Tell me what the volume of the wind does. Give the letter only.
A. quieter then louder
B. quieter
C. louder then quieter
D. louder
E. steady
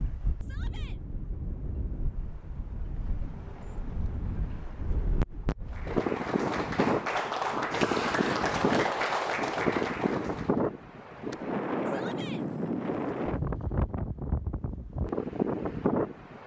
D.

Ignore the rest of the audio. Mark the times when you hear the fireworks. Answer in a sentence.
The fireworks can't be heard in this clip.